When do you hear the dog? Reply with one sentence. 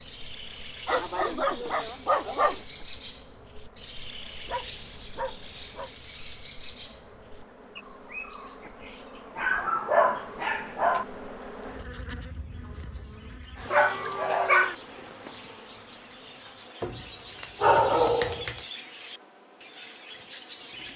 The dog can be heard from 0.8 to 2.6 s, from 4.5 to 5.9 s, from 9.3 to 11.1 s, from 13.7 to 14.8 s and from 16.8 to 18.6 s.